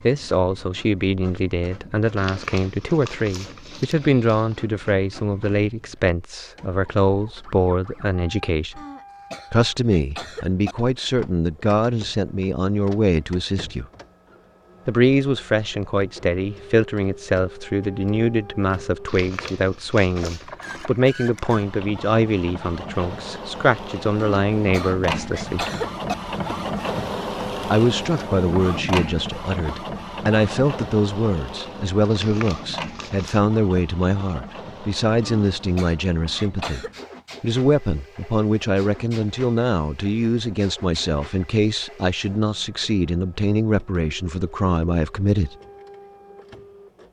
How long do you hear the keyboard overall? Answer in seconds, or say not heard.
not heard.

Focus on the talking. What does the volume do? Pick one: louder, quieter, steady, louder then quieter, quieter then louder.
steady.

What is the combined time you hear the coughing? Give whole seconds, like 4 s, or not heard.
6 s.